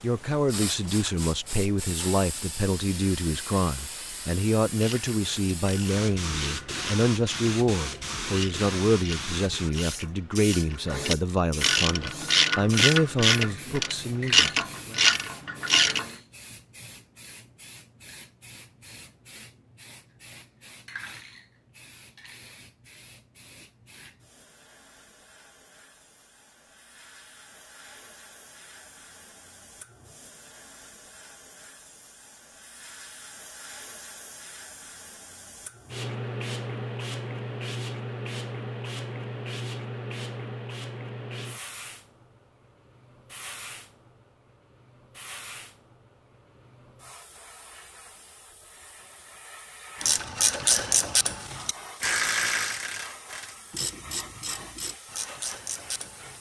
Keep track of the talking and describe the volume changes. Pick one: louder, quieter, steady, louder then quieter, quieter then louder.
steady.